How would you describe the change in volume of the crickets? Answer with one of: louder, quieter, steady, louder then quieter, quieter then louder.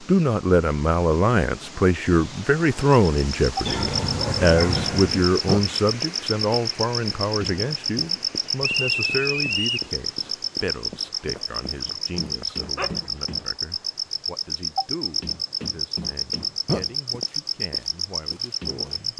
steady.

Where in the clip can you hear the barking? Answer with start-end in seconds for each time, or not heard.
3.6-5.2, 11.2-13.1.